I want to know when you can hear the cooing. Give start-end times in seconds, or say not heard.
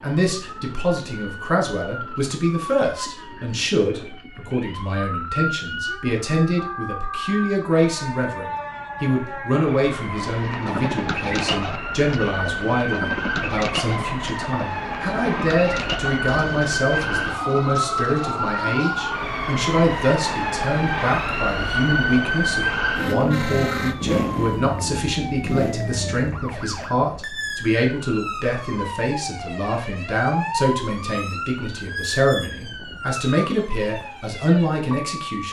10.2-19.2.